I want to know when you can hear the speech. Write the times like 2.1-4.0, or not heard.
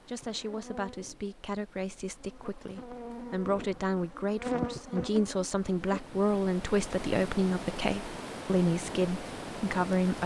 0.1-10.2.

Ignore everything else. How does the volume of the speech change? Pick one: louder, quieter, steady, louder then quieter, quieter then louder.
louder.